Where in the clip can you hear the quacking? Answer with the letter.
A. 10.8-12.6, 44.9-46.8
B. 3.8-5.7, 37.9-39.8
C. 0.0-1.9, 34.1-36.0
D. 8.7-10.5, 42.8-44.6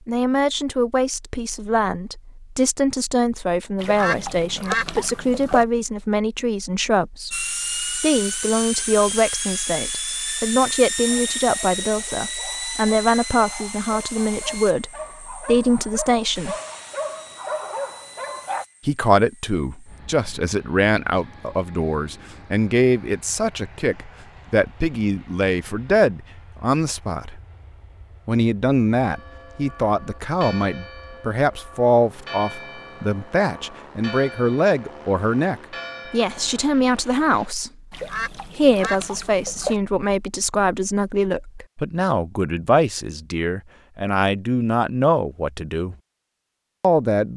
B.